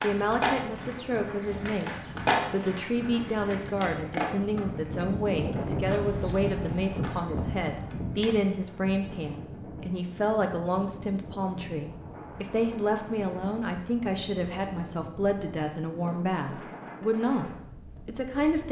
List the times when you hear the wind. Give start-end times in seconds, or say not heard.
0.0-18.6.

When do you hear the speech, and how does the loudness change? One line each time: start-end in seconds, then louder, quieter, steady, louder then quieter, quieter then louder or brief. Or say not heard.
0.0-18.6 steady.